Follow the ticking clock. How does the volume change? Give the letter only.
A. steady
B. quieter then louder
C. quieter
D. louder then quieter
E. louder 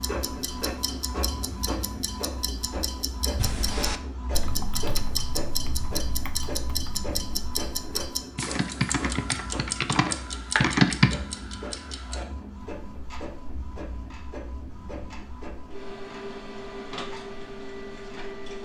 D.